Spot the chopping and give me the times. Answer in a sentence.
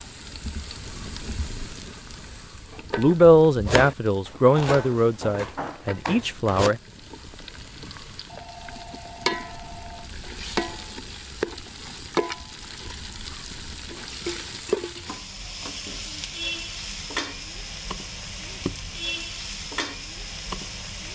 You can hear the chopping from 3.6 to 6.8 s.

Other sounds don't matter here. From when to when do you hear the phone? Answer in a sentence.
The phone can be heard from 8.2 to 10.3 s.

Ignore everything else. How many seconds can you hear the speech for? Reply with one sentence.
You can hear the speech for 4 seconds altogether.